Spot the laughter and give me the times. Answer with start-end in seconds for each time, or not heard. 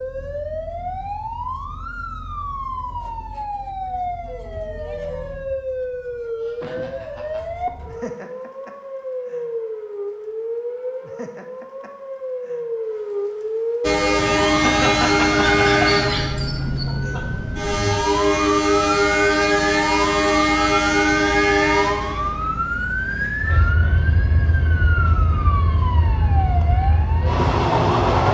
6.4-7.5, 14.4-17.2, 23.3-23.9.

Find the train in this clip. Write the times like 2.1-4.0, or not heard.
13.8-28.3.